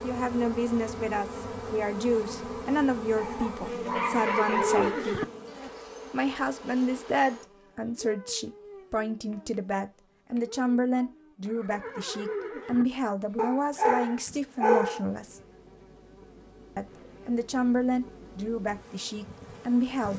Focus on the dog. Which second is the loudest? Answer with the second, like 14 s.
15 s.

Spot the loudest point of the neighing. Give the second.
5 s.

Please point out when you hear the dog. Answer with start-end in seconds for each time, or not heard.
3.1-5.0, 13.3-15.1.